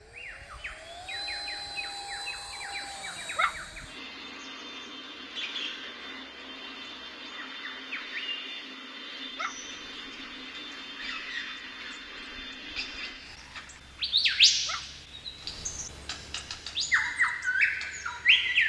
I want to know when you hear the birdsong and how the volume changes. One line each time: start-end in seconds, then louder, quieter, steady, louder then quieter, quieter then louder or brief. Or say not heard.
0.1-18.6 louder.